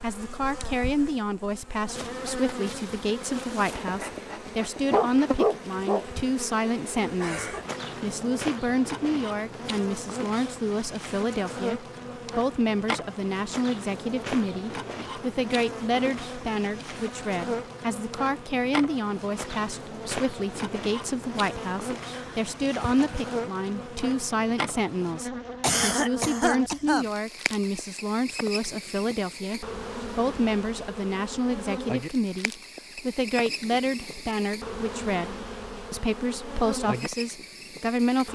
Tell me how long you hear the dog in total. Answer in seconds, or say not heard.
2 s.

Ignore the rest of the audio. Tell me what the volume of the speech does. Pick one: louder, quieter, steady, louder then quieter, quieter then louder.
steady.